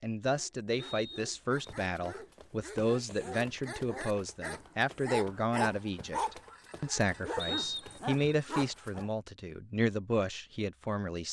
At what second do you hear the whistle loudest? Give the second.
8 s.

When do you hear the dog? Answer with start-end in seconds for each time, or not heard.
0.2-9.1.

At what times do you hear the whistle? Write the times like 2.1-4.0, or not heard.
0.8-1.6, 7.3-8.2.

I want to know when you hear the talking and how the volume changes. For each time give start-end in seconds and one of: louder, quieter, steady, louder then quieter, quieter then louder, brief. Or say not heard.
0.0-11.2 steady.